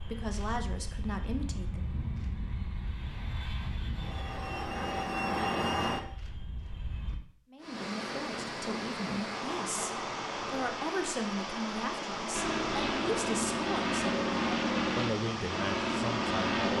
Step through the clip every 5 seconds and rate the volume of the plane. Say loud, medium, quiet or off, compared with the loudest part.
medium, loud, loud, loud.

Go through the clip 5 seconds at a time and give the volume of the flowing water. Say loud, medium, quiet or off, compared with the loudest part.
off, loud, loud, loud.